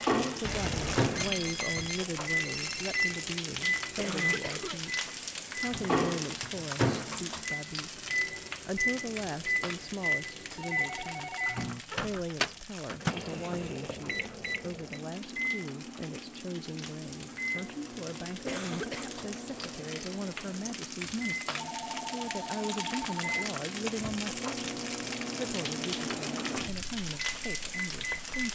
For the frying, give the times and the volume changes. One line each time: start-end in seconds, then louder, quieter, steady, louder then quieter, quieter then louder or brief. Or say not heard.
0.0-28.4 quieter then louder.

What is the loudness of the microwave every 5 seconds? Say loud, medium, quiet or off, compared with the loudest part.
loud, loud, loud, medium, medium, medium.